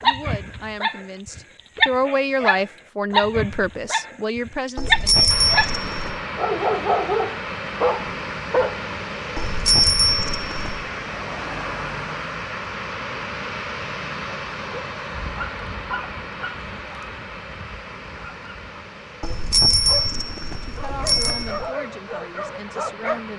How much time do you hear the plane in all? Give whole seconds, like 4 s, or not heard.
18 s.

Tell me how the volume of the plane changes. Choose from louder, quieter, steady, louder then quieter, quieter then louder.
quieter.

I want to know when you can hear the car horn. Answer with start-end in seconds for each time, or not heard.
not heard.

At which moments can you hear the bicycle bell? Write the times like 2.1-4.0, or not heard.
4.8-6.2, 9.3-10.8, 19.2-21.7.